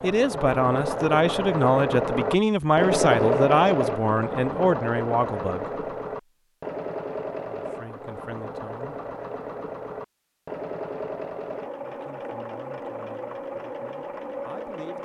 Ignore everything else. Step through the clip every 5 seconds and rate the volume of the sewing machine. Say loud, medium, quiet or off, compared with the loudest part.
loud, medium, medium.